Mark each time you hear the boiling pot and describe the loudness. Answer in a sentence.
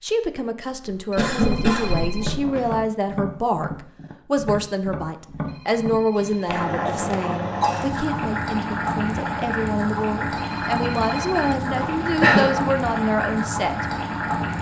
You can hear the boiling pot from 6.5 to 14.5 s, at a steady volume.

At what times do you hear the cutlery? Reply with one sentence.
You can't hear the cutlery here.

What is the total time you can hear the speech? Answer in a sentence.
You can hear the speech for 14 seconds altogether.